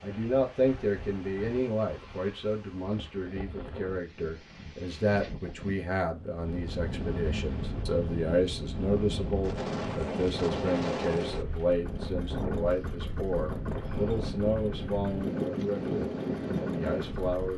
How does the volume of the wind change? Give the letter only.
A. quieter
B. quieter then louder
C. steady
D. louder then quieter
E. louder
E.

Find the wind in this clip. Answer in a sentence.
The wind can be heard from 0.0 to 17.5 s.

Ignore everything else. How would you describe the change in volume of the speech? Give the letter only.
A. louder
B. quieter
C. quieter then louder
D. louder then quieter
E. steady
E.